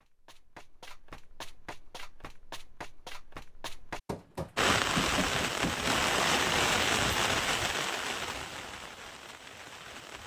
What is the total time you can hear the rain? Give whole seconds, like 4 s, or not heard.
6 s.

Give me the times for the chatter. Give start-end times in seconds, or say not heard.
not heard.